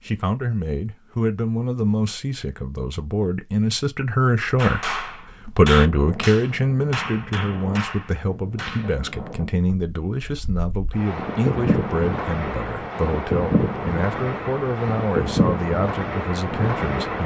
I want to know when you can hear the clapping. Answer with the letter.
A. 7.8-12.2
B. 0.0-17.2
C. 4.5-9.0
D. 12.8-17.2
C.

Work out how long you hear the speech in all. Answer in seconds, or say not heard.
17 s.